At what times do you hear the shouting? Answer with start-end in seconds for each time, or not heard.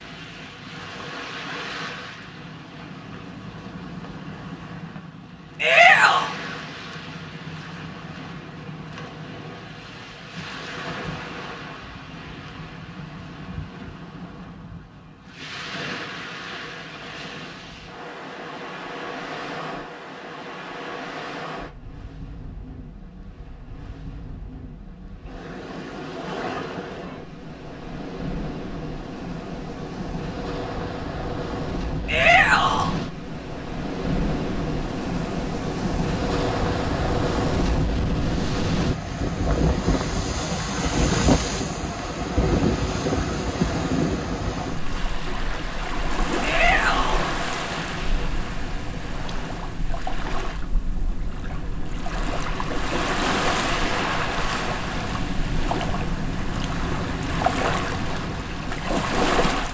5.6-6.3, 32.0-32.9, 46.4-47.2.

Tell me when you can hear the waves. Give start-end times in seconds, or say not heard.
0.0-59.6.